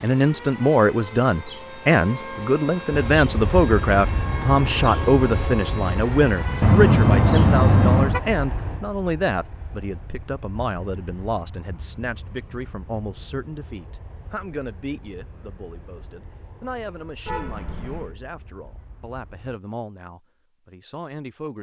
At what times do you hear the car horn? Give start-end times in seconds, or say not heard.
6.6-8.2, 17.2-18.1.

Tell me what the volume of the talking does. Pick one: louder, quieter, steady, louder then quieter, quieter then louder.
quieter.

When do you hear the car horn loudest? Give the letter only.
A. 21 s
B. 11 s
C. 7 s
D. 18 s
C.